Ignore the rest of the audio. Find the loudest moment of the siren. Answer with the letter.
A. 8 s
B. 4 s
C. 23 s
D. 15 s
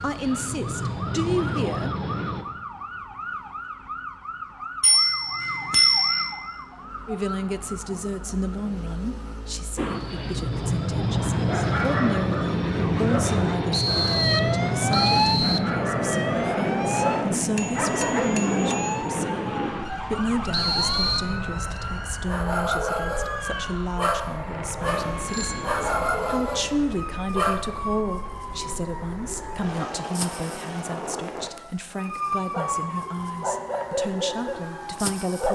D.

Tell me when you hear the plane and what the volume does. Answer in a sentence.
The plane can be heard briefly from 0.0 to 2.5 s; and from 9.8 to 31.5 s, getting quieter.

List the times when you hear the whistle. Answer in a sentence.
You can hear the whistle from 13.7 to 15.7 s and from 20.5 to 21.4 s.